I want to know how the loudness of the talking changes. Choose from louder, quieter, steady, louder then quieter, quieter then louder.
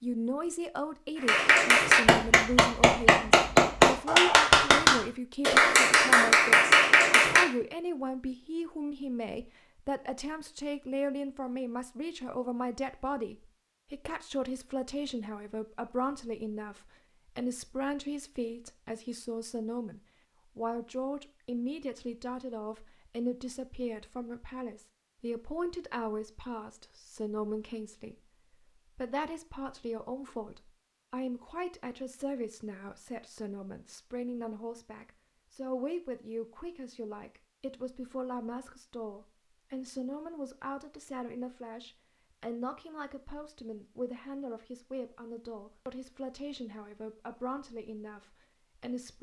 quieter.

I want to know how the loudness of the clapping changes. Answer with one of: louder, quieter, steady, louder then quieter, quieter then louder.
steady.